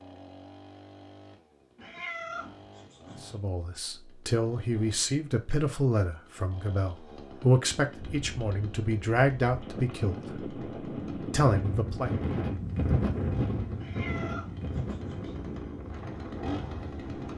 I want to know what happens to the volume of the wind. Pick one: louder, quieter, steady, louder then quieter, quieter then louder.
louder then quieter.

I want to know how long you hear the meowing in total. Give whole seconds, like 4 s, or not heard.
3 s.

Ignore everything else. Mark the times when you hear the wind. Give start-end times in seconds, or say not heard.
8.1-17.3.